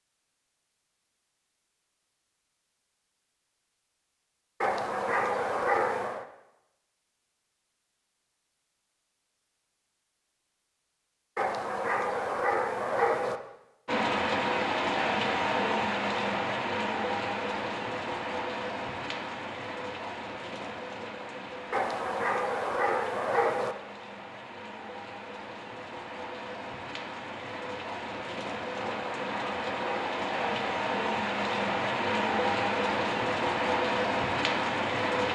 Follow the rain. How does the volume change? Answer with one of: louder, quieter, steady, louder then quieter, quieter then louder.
quieter then louder.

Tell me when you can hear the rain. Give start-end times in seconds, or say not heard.
13.8-35.2.